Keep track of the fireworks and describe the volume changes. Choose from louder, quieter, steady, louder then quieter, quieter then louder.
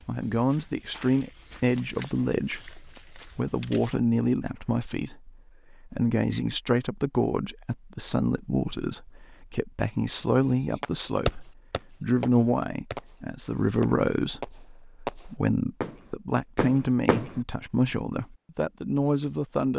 quieter then louder.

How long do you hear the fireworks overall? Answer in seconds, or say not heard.
7 s.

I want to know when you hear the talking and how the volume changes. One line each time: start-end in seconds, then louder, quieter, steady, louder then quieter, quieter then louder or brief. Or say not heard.
0.1-19.7 steady.